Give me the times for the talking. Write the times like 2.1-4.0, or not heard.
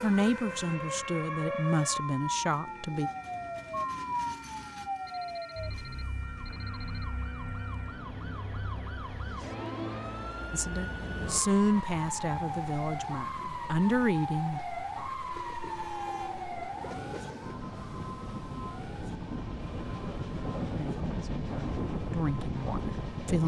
0.0-3.1, 10.5-14.6, 20.7-23.4.